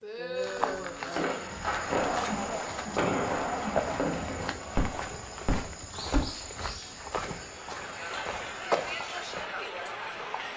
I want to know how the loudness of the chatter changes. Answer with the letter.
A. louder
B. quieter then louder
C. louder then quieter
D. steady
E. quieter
B.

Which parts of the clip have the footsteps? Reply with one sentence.
The footsteps can be heard from 0.3 to 9.5 s.